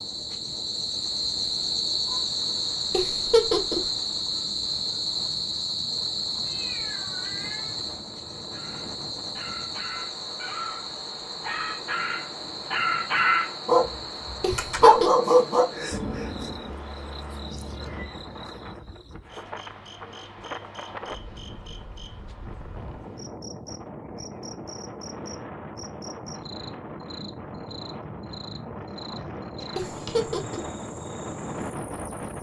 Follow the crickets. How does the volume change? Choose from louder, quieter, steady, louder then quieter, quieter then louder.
quieter.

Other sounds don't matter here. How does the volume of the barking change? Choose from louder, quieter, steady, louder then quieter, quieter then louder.
louder.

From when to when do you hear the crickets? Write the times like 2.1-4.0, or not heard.
0.0-32.3.